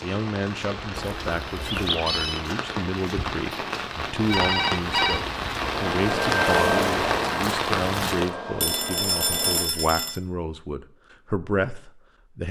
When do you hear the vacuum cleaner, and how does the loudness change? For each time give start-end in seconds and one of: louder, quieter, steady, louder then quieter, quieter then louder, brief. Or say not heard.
5.5-9.7 quieter.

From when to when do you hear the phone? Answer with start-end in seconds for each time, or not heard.
0.9-2.4, 4.2-5.2, 8.6-10.2.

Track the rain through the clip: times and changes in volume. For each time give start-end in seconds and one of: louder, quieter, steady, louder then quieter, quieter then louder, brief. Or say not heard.
0.0-8.3 louder.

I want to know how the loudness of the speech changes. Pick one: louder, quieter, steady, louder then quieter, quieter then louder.
steady.